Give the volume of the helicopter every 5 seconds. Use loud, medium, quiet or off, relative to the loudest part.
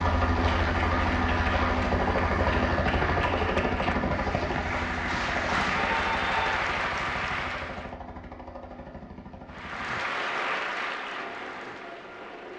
loud, medium, quiet.